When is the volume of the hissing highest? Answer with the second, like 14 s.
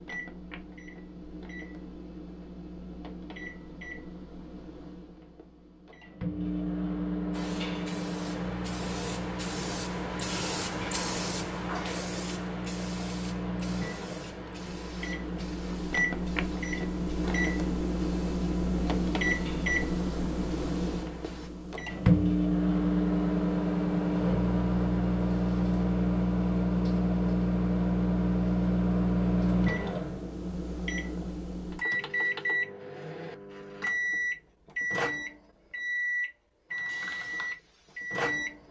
11 s.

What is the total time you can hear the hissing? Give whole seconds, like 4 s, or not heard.
16 s.